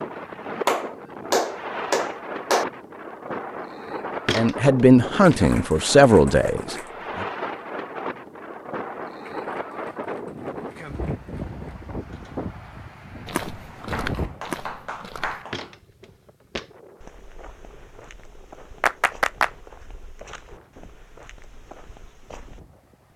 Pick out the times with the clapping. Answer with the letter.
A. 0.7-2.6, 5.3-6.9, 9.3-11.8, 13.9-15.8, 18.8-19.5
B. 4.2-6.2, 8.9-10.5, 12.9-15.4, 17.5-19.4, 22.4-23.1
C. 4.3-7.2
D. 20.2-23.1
A.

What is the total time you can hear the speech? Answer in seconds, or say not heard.
3 s.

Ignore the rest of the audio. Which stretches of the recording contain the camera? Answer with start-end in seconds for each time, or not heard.
not heard.